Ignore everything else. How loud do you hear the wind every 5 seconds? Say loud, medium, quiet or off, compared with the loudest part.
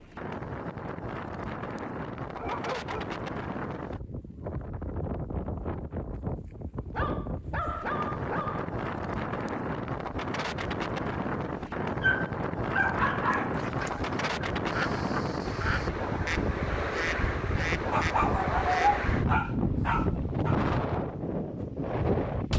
medium, medium, loud, loud, loud.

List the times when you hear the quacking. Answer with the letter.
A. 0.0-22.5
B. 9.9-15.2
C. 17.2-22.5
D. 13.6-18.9
D.